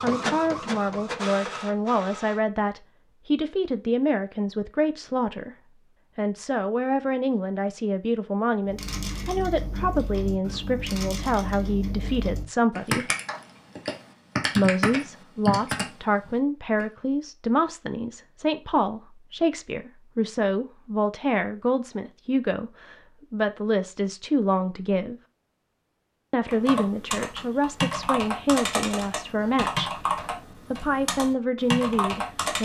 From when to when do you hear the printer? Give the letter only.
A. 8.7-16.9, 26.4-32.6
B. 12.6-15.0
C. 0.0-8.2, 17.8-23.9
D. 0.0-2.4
D.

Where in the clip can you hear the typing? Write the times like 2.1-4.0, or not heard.
8.7-16.9, 26.4-32.6.